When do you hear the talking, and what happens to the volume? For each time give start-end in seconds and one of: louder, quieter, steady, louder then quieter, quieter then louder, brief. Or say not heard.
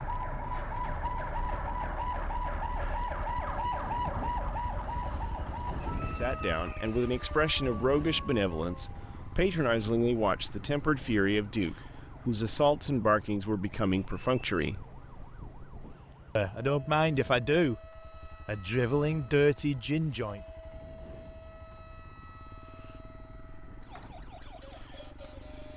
6.0-14.8 steady
16.4-20.4 quieter then louder.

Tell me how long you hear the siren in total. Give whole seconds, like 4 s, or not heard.
26 s.